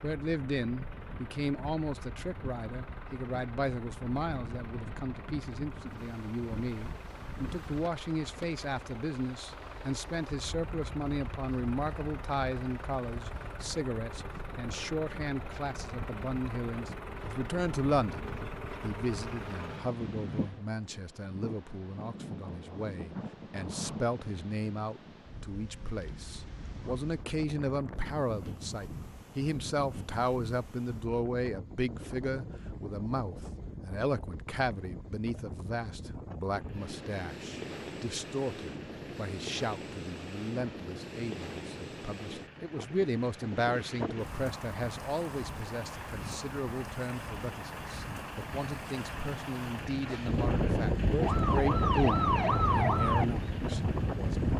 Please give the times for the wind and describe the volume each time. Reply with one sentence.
The wind can be heard from 0.2 to 54.5 s, getting louder.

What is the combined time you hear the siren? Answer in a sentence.
The siren can be heard for 3 seconds in total.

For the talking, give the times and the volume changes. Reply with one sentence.
The talking can be heard from 0.0 to 54.4 s, at a steady volume.